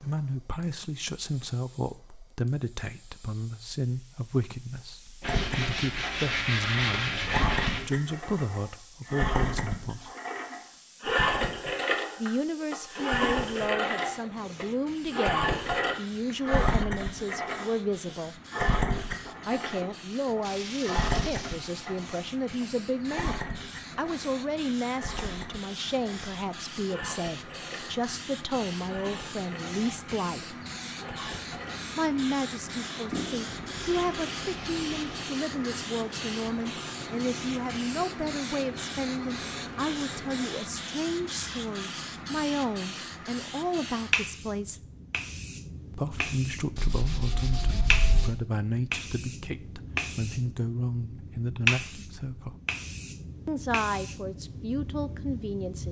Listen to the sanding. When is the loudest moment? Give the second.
7 s.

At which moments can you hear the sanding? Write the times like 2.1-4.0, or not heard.
5.2-7.8, 20.4-21.8, 33.1-35.4, 46.8-48.3.